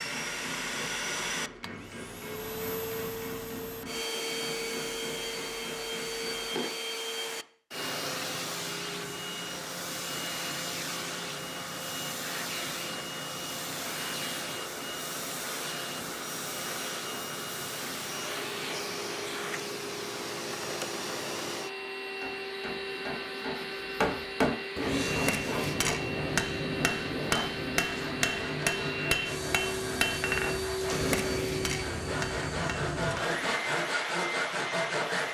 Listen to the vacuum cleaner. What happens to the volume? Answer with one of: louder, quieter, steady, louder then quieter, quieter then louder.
steady.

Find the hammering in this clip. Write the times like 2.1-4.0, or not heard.
0.0-6.6, 21.8-33.5.